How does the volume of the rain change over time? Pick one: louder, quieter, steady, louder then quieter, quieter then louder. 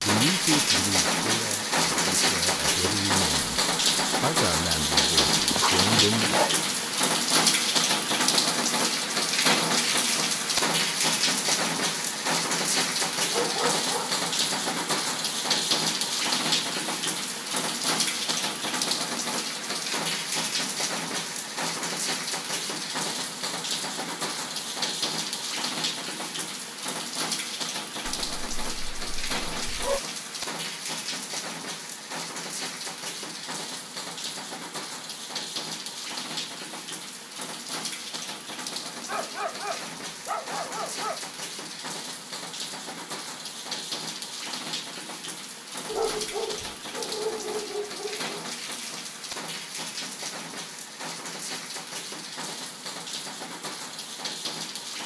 quieter.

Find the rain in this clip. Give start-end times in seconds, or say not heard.
0.0-55.0.